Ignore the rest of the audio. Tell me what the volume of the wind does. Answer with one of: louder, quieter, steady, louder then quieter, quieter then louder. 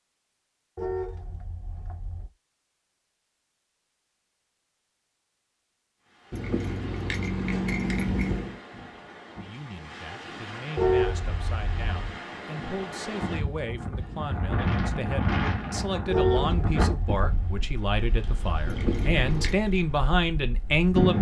louder then quieter.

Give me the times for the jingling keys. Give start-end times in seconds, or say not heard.
6.3-8.6, 18.6-19.6.